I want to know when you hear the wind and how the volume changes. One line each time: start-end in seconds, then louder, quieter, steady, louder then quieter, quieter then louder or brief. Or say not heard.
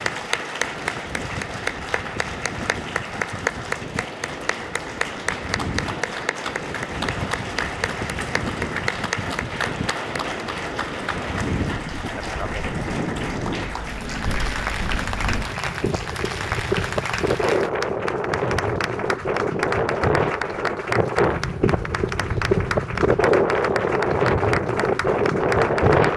0.0-26.1 louder.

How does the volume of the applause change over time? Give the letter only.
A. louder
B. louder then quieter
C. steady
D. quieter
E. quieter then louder
C.